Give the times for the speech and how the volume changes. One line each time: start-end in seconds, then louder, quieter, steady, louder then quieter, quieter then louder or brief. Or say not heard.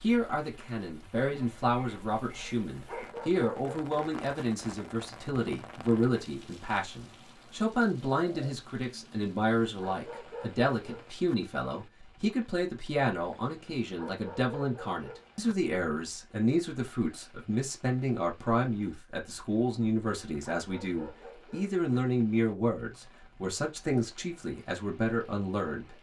0.0-25.9 steady.